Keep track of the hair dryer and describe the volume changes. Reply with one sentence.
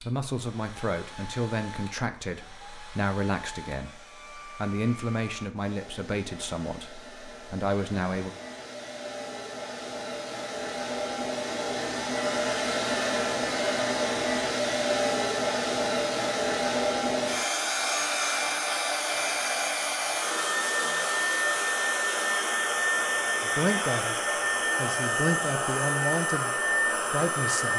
The loudness of the hair dryer goes up.